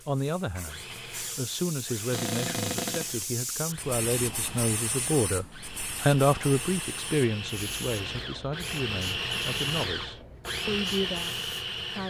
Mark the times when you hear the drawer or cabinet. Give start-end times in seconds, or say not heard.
2.1-3.1.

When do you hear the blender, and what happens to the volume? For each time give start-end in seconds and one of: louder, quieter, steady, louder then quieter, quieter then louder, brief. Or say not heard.
0.0-12.0 louder.